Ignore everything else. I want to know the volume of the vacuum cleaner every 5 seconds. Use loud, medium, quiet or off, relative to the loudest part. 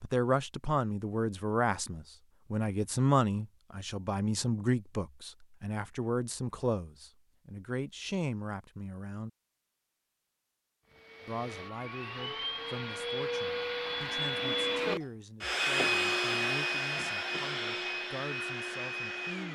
off, off, loud, loud.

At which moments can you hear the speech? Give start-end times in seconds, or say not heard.
0.0-9.3, 11.2-19.5.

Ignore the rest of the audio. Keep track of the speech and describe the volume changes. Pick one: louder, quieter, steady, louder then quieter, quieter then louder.
quieter.